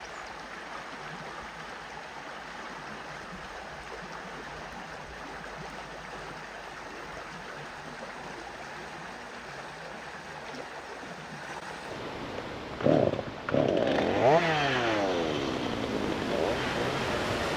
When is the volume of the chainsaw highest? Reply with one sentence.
The volume of the chainsaw peaks at 14 seconds.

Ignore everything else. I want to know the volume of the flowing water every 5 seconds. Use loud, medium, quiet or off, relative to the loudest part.
medium, medium, medium, loud.